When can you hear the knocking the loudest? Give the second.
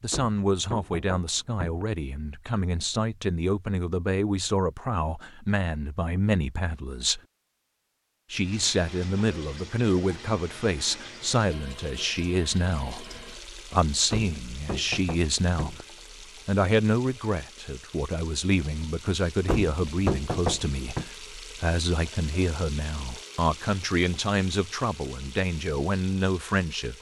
20 s.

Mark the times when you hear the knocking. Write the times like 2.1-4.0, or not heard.
0.1-1.9, 14.1-15.8, 19.4-21.1.